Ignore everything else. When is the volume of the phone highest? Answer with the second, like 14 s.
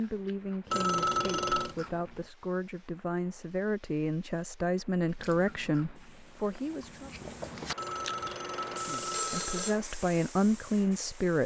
1 s.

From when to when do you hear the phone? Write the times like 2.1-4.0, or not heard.
0.7-1.8, 7.8-9.8.